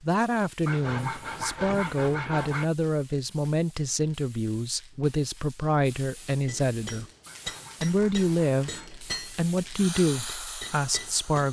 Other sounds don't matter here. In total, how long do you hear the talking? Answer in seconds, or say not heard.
11 s.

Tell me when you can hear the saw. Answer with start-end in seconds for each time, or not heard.
0.7-2.6, 7.2-8.9.